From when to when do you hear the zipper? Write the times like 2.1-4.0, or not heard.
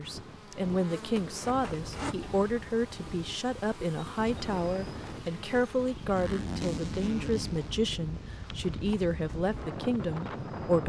1.1-2.1, 6.2-7.8.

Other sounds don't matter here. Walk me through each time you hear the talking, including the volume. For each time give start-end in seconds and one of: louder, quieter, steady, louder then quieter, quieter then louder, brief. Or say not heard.
0.0-10.8 steady.